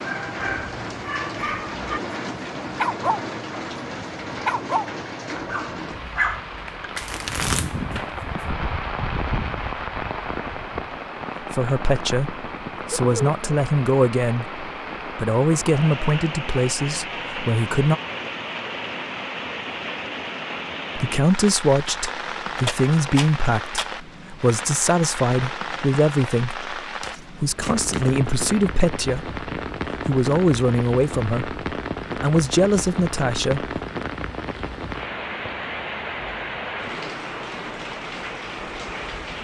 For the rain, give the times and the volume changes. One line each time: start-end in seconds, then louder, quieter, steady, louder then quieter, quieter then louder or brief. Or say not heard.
0.0-39.3 steady.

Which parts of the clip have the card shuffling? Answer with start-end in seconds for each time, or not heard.
6.5-8.4, 22.6-23.9, 27.0-28.1.